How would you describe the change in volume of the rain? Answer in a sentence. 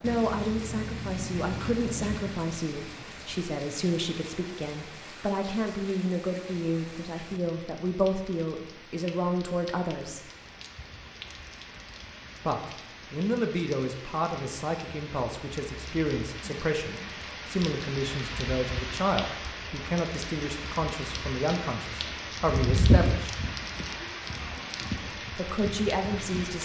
The loudness of the rain goes down, then up.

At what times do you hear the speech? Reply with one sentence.
You can hear the speech from 0.0 to 10.2 s, from 12.4 to 23.3 s and from 25.4 to 26.6 s.